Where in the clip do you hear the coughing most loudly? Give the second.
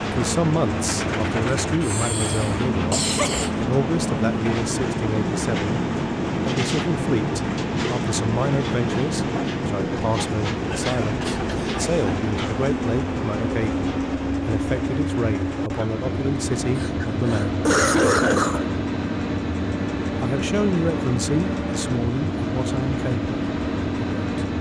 18 s.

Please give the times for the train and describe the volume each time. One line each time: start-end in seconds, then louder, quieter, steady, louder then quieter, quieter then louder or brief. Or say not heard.
0.0-24.5 steady.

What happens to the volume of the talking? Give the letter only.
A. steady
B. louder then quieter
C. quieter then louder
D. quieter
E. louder
A.